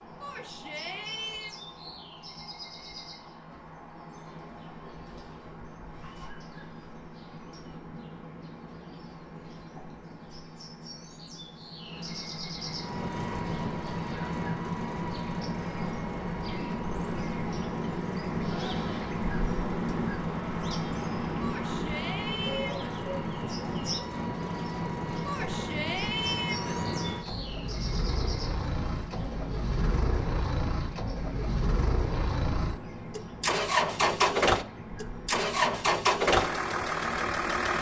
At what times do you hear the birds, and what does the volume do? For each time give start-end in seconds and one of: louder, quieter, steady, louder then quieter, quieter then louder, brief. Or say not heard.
0.0-37.7 louder then quieter.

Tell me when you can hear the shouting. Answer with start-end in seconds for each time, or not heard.
0.2-1.6, 21.4-22.9, 25.2-26.8.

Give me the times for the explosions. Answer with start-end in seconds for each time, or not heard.
not heard.